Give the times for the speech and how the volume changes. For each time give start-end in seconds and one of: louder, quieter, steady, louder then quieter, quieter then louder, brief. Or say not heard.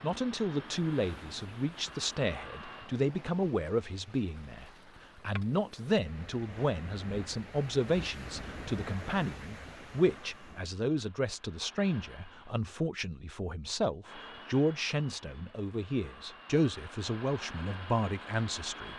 0.0-18.9 steady.